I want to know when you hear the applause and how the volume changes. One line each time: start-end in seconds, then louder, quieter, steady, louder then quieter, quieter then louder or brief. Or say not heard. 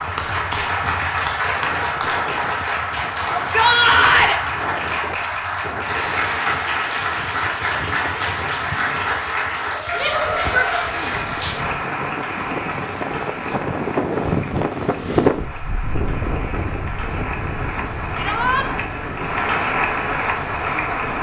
0.0-21.1 quieter then louder.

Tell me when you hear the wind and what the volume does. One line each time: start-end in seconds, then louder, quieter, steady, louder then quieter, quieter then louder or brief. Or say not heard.
0.0-21.1 louder then quieter.